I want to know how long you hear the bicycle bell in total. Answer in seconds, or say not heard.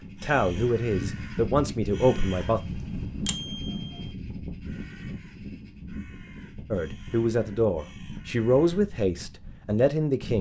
2 s.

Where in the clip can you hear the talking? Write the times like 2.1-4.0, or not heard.
0.2-2.6, 6.7-10.3.